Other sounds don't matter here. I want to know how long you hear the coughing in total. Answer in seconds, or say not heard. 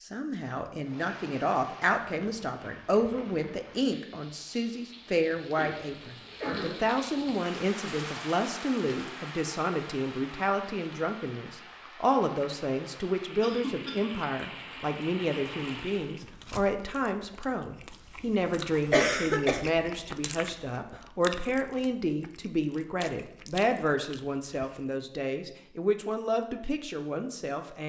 3 s.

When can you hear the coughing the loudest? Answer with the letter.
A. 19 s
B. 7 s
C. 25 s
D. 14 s
A.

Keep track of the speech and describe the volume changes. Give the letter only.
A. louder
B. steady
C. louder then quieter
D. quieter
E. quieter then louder
B.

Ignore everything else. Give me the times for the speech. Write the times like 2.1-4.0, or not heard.
0.0-27.8.